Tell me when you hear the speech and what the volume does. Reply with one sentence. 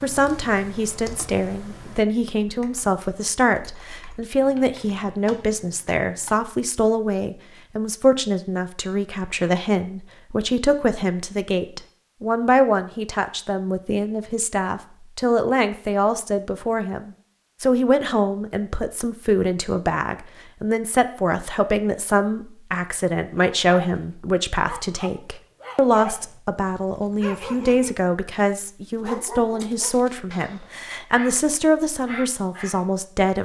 The speech can be heard from 0.0 to 33.4 s, at a steady volume.